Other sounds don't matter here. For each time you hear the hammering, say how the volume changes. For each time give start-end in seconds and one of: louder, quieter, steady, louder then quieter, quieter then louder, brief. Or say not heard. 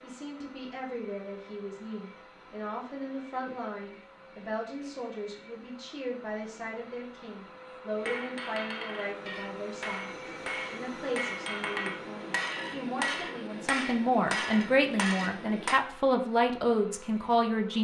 8.0-15.8 louder.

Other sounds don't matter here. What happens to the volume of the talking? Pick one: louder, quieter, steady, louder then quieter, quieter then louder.
louder.